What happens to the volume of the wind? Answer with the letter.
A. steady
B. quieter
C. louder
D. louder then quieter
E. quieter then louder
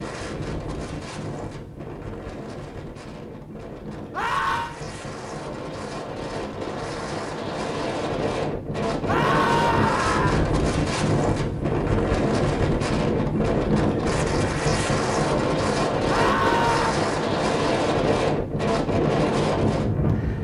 C.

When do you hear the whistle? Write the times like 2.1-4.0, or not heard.
not heard.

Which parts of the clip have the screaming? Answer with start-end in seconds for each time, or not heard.
4.1-4.8, 9.1-10.6, 16.1-16.9.